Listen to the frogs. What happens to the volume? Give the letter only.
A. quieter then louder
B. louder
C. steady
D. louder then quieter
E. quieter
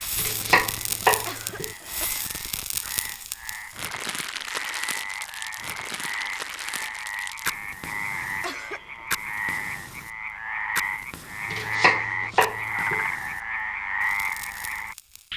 B.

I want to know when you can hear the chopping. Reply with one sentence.
You can hear the chopping from 0.1 to 1.7 s and from 11.5 to 13.1 s.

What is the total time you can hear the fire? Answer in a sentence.
You can hear the fire for 15 seconds altogether.